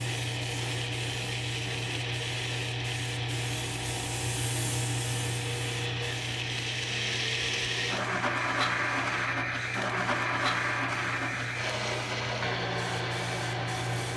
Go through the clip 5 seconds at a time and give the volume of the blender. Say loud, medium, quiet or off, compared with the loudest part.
medium, loud, loud.